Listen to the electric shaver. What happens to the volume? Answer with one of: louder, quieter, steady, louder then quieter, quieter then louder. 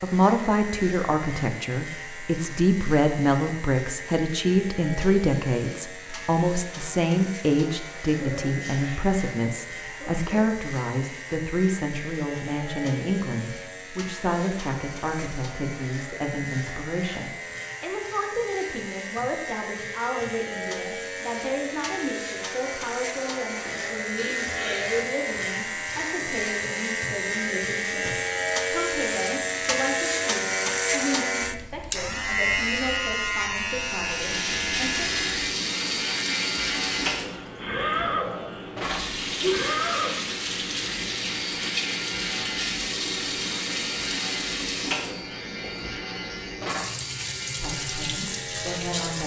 louder then quieter.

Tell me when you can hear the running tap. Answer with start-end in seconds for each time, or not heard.
34.0-49.2.